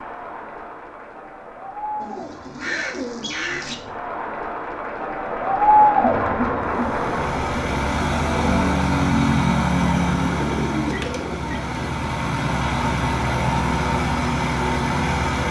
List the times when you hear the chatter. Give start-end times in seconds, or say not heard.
0.0-8.8.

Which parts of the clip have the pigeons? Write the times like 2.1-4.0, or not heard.
2.0-3.8, 10.1-11.8.